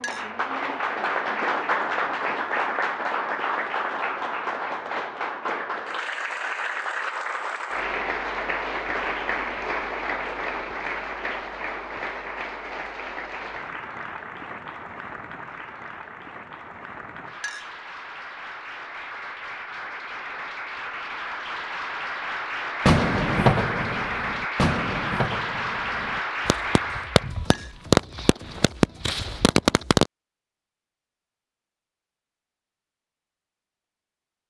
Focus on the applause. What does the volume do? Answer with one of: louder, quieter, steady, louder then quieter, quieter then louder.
quieter then louder.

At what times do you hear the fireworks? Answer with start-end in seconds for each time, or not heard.
22.9-30.1.